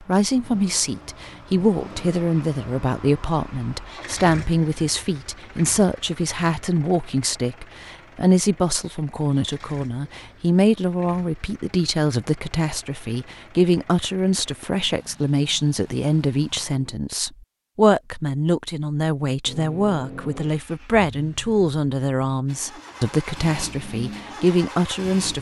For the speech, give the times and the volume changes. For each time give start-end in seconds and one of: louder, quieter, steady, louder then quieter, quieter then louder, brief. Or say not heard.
0.1-25.3 steady.